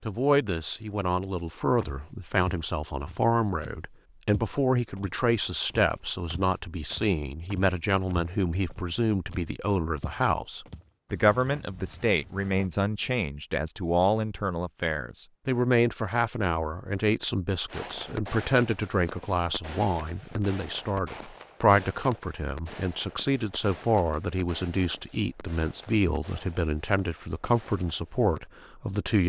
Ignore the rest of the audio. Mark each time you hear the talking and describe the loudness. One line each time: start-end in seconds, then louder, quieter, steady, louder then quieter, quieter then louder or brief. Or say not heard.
0.0-29.2 steady.